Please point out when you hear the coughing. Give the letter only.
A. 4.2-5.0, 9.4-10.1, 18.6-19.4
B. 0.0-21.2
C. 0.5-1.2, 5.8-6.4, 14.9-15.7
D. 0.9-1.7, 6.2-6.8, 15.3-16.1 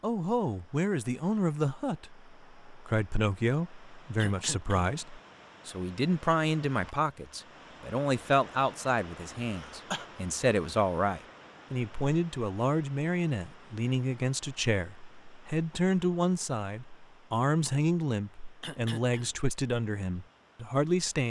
A.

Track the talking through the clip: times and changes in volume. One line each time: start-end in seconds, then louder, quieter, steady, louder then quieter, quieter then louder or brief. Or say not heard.
0.0-21.2 steady.